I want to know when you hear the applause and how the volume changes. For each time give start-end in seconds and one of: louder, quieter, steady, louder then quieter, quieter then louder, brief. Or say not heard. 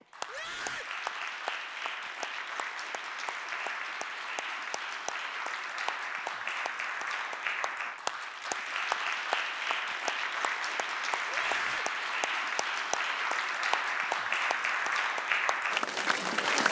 0.0-16.6 louder.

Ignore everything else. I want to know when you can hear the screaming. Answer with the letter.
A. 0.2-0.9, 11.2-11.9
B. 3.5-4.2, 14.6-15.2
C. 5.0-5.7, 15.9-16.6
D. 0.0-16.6
A.